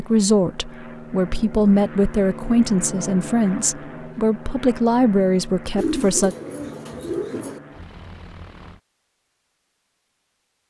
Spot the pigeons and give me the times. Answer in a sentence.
The pigeons can be heard from 5.8 to 7.6 s.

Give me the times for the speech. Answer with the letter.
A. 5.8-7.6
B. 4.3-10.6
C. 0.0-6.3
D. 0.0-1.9
C.